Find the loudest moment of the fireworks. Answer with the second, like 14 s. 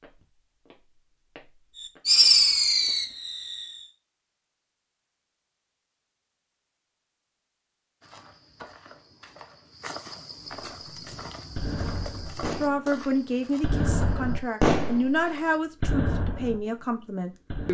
2 s.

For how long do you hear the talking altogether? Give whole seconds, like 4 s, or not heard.
5 s.